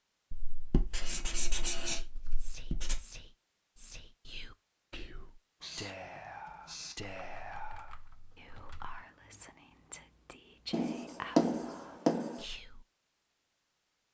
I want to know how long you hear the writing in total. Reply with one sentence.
You can hear the writing for 6 seconds altogether.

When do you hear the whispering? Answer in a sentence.
The whispering can be heard from 1.8 to 12.8 s.